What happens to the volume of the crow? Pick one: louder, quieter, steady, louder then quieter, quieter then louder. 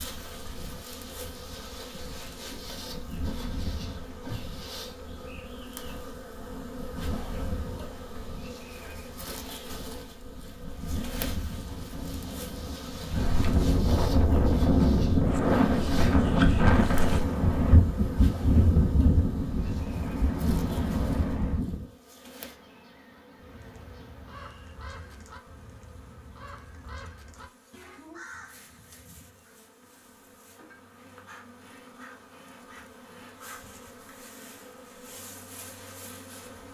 steady.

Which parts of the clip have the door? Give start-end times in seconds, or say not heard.
not heard.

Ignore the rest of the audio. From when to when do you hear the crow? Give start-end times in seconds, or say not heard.
23.4-29.6.